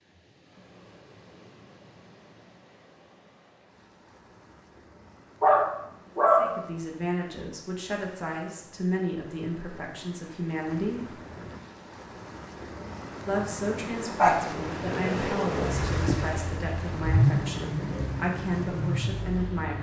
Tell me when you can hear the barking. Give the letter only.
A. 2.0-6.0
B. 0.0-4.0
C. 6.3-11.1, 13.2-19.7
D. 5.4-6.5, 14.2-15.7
D.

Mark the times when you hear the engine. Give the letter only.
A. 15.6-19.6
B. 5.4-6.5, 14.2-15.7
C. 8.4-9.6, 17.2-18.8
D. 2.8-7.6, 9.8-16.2
A.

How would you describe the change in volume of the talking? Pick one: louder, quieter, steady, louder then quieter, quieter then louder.
steady.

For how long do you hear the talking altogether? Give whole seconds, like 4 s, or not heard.
11 s.